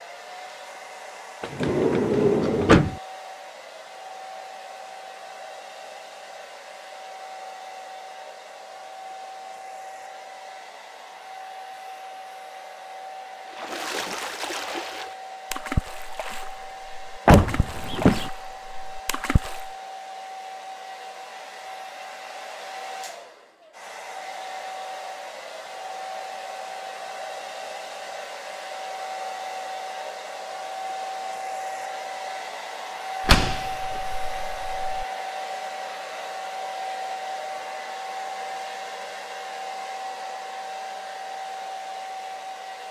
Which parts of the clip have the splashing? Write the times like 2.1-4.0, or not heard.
13.5-19.7.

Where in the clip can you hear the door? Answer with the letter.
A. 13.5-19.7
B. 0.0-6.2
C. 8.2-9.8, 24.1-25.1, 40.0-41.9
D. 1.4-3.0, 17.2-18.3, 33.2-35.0
D.